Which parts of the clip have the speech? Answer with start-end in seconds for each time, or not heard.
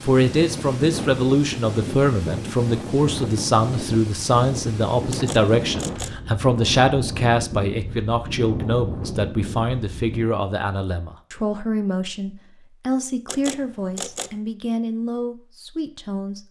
0.0-16.4.